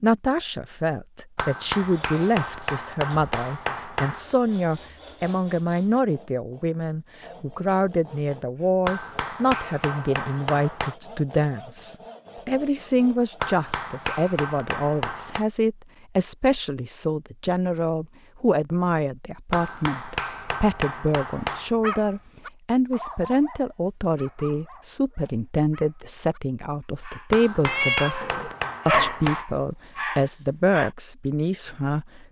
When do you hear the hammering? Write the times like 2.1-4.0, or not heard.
1.4-4.3, 8.8-10.9, 13.4-15.4, 19.5-21.7, 27.3-29.4.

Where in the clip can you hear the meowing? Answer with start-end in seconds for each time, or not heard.
27.6-29.2.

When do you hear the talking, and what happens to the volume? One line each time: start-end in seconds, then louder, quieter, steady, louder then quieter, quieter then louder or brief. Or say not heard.
0.0-32.2 steady.